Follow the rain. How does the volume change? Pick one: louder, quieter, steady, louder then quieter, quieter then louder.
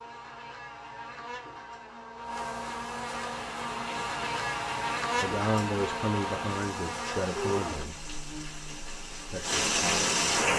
louder.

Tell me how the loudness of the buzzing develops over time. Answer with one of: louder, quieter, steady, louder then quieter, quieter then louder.
louder then quieter.